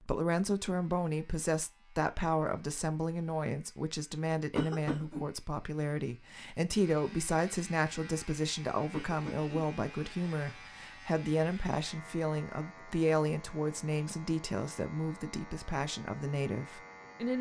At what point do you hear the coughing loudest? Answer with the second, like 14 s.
5 s.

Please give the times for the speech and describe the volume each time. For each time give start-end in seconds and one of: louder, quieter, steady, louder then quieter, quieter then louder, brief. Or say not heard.
0.0-17.3 steady.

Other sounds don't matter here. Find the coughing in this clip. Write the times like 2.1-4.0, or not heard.
4.5-5.2, 8.9-10.7.